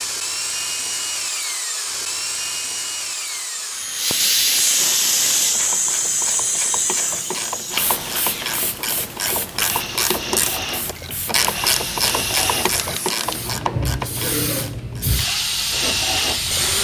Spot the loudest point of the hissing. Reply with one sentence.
The volume of the hissing peaks at 5 seconds.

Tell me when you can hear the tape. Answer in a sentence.
You can't hear the tape here.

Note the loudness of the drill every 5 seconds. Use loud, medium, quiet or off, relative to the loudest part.
loud, medium, loud, loud.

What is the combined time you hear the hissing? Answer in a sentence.
You can hear the hissing for 13 seconds altogether.